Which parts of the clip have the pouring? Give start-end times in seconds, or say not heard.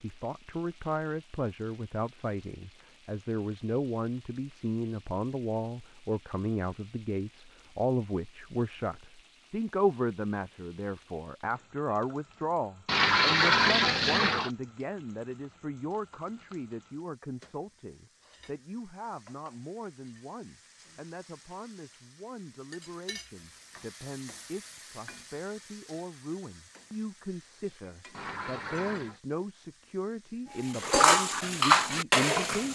12.8-14.5, 28.1-29.2.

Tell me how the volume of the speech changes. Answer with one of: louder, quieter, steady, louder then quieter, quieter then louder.
quieter then louder.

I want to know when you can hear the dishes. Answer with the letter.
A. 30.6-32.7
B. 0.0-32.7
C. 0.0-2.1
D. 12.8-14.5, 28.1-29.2
A.